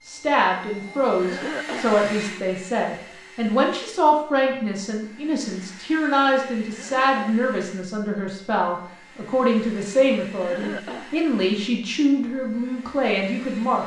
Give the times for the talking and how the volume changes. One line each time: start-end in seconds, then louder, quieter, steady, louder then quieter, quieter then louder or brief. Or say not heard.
0.1-13.8 steady.